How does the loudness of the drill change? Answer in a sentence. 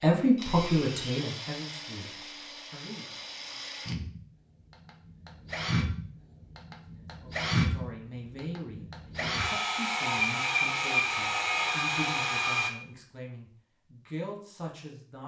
The loudness of the drill goes up.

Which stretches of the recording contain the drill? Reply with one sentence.
You can hear the drill from 0.3 to 12.7 s.